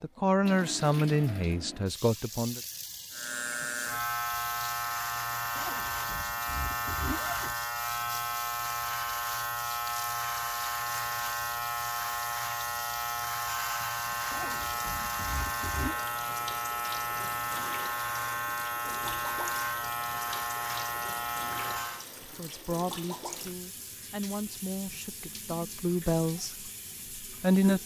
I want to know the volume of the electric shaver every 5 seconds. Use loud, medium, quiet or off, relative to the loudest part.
loud, loud, loud, loud, loud, off.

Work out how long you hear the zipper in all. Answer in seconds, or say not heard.
4 s.